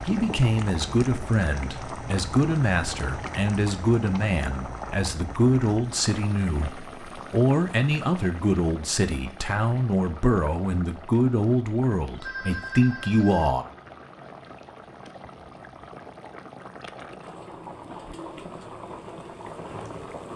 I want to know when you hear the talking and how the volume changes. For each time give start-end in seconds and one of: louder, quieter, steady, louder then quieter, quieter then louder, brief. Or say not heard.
0.0-13.7 steady.